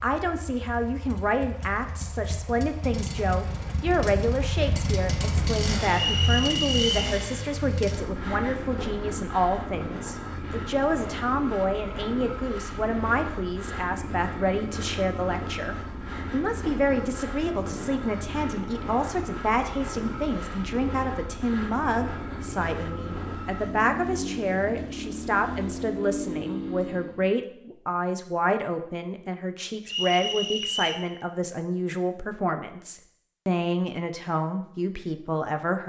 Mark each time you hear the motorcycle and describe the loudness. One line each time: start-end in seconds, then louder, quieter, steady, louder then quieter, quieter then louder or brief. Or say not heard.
0.0-27.4 steady.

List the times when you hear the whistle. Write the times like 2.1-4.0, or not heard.
5.9-7.0, 29.9-31.0.